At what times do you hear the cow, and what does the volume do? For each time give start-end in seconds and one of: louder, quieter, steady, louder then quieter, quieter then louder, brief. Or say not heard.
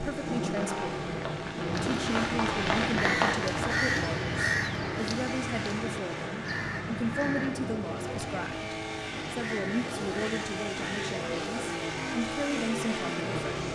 not heard.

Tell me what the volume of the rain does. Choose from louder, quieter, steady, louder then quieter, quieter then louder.
louder then quieter.